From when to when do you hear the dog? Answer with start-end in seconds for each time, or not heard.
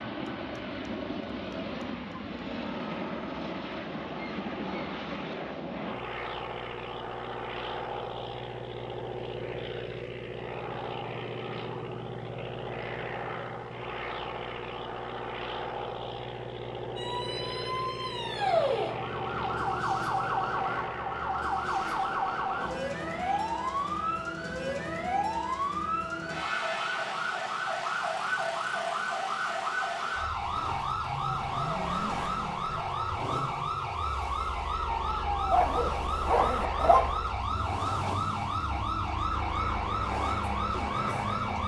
35.5-37.1.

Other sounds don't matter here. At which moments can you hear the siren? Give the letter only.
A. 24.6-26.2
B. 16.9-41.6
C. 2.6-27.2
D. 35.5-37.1
B.